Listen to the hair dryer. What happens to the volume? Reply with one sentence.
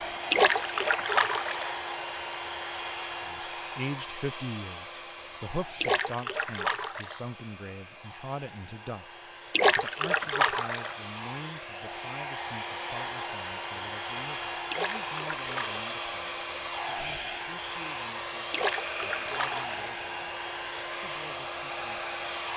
The loudness of the hair dryer goes down, then up.